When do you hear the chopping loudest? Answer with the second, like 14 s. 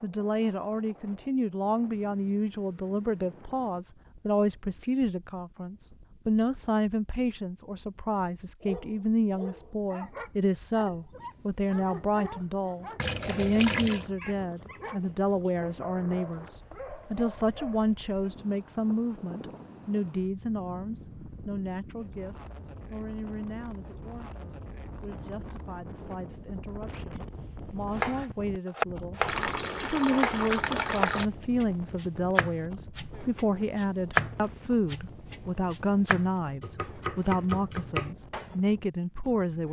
34 s.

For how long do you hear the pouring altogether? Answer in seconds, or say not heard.
3 s.